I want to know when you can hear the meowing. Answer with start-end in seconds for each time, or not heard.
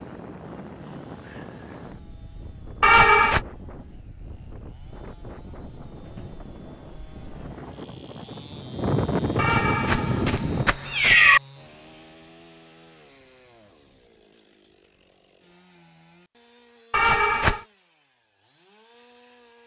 2.8-3.4, 9.3-11.4, 16.9-17.6.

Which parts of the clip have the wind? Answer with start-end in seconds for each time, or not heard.
0.0-10.7.